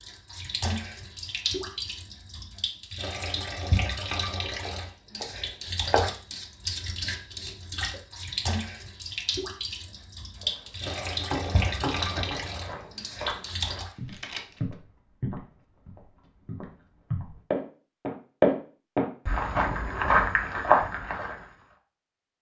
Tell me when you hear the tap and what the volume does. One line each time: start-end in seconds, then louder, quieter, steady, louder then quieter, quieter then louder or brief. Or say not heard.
0.0-13.9 steady.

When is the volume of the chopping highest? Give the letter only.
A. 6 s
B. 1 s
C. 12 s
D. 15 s
A.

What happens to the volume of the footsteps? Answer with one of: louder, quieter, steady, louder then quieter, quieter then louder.
louder.